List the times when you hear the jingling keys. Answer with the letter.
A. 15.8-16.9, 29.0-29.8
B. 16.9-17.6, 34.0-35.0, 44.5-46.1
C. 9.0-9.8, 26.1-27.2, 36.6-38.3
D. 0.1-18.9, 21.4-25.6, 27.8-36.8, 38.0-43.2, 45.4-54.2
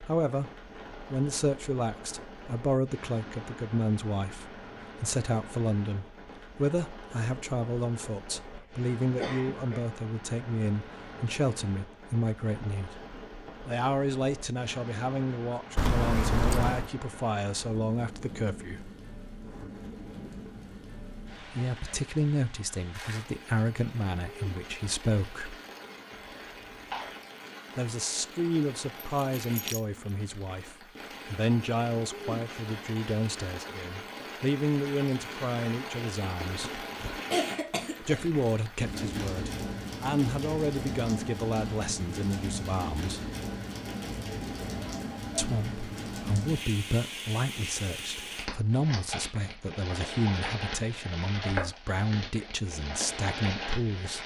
A.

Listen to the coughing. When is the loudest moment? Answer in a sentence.
The volume of the coughing peaks at 37 seconds.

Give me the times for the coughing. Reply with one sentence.
The coughing can be heard from 9.0 to 9.8 s, from 26.1 to 27.2 s and from 36.6 to 38.3 s.